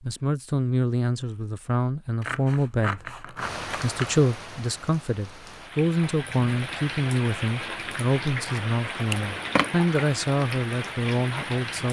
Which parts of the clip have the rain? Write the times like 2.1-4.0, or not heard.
3.4-11.8.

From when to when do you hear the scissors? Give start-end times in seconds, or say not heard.
2.2-4.2, 9.1-9.7.